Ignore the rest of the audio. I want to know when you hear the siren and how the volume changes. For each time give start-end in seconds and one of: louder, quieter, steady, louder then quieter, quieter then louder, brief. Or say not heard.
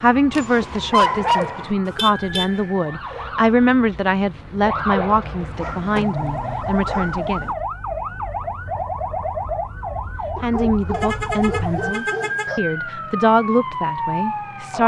0.0-14.8 louder.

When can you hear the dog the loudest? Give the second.
1 s.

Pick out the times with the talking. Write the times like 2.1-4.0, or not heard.
0.0-7.5, 10.4-14.8.